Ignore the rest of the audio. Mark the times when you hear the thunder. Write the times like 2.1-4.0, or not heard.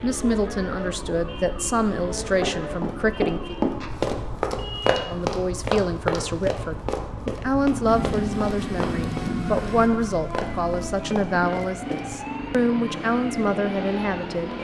7.8-9.9.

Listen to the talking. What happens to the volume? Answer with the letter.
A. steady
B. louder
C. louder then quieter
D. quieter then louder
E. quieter
A.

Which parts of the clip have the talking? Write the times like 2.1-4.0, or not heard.
0.0-3.5, 5.1-14.5.